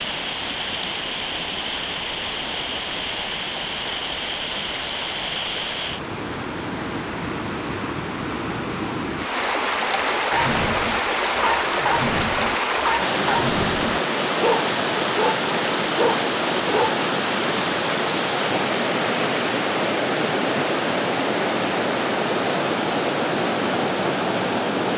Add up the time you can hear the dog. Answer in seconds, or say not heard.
7 s.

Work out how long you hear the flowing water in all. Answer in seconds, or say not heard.
25 s.